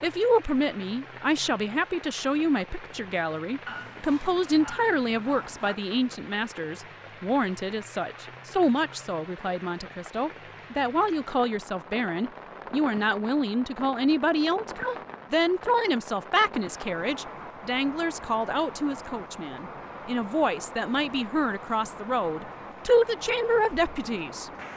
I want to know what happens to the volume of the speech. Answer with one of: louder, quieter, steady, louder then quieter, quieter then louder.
steady.